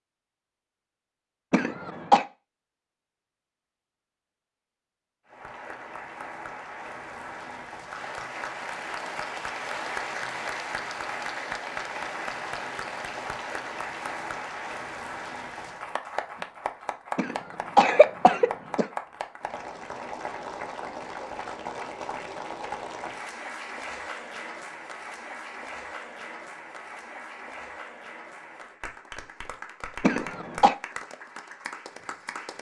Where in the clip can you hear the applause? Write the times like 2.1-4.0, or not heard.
5.2-32.5.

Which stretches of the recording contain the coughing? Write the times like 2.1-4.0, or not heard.
1.5-2.2, 17.1-18.9, 30.0-30.8.